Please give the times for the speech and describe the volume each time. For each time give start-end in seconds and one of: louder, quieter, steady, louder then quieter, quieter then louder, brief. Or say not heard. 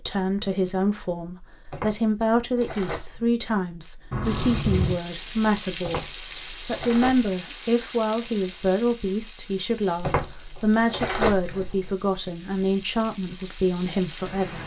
0.1-14.6 steady.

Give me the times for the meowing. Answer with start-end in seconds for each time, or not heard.
4.1-5.0.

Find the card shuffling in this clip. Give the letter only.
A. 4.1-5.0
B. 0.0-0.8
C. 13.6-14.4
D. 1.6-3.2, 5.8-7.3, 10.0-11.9
D.